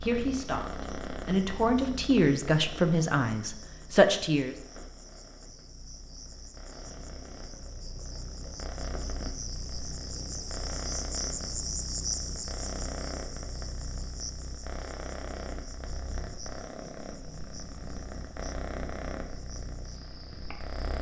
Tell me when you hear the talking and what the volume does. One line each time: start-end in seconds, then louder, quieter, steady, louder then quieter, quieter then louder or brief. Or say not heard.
0.0-4.5 louder.